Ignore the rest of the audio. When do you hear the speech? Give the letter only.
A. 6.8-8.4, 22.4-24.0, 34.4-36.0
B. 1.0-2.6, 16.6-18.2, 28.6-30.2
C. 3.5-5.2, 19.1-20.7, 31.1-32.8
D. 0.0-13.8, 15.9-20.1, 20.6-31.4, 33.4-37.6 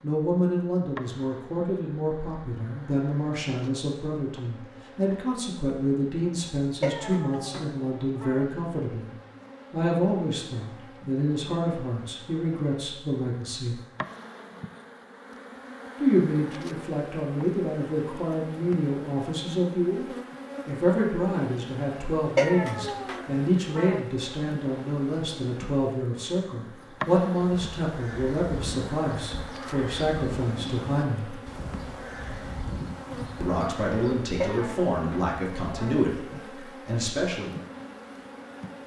D.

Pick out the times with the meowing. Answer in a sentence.
You can hear the meowing from 6.8 to 8.4 s, from 22.4 to 24.0 s and from 34.4 to 36.0 s.